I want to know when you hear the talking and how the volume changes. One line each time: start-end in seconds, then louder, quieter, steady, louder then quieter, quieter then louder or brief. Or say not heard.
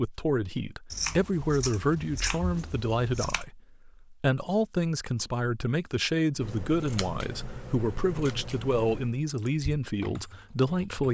0.0-11.0 steady.